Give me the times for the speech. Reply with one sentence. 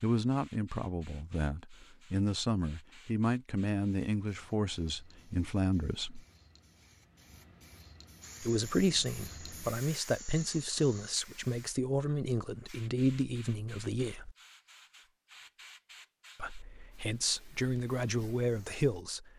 You can hear the speech from 0.0 to 6.2 s, from 8.4 to 14.3 s and from 16.4 to 19.3 s.